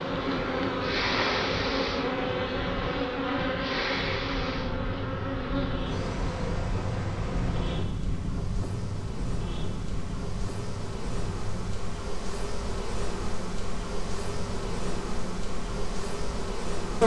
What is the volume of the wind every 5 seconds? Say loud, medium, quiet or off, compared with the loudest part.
loud, loud, medium, medium.